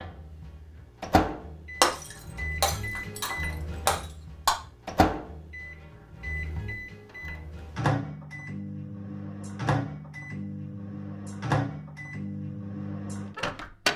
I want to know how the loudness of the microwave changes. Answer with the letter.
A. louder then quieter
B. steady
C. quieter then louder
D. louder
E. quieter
B.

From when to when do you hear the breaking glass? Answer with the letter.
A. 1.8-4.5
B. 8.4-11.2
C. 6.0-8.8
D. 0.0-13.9
A.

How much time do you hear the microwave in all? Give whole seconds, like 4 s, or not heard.
14 s.